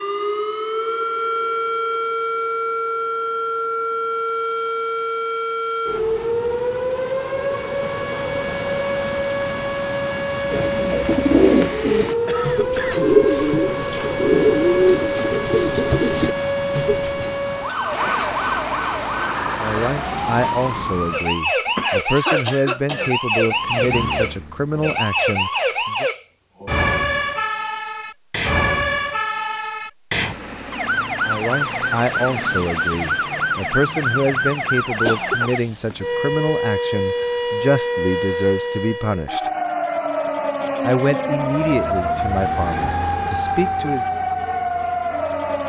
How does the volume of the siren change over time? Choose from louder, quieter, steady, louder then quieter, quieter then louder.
steady.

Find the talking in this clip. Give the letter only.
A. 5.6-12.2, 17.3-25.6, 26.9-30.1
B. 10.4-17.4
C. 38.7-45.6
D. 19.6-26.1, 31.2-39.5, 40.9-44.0
D.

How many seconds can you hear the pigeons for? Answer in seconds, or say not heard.
7 s.